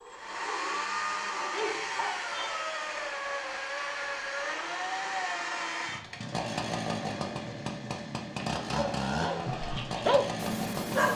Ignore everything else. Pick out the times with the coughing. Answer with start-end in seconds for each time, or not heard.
not heard.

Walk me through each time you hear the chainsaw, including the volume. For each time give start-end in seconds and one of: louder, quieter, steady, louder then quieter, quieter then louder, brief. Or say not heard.
0.0-11.1 steady.